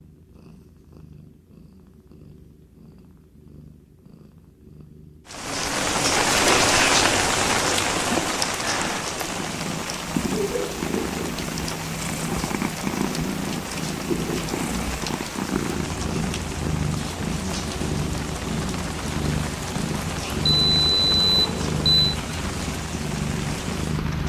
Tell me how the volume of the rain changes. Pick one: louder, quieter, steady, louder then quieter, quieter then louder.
quieter.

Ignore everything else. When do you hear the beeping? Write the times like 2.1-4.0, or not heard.
20.4-22.1.